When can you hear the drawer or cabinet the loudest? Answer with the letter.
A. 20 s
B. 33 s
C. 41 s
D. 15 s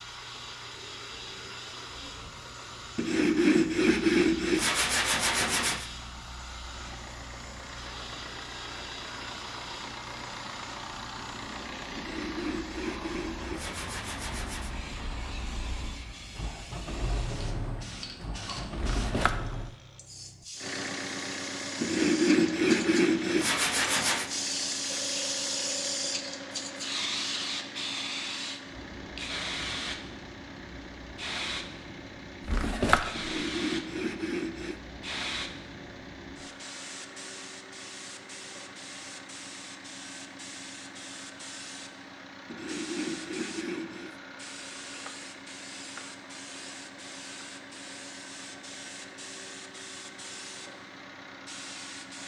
B.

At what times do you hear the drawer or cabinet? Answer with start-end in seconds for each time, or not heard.
18.8-19.6, 32.5-33.4.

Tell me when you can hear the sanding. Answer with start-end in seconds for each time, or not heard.
3.0-5.8, 11.9-14.8, 21.8-24.3, 33.1-34.8, 42.5-44.1.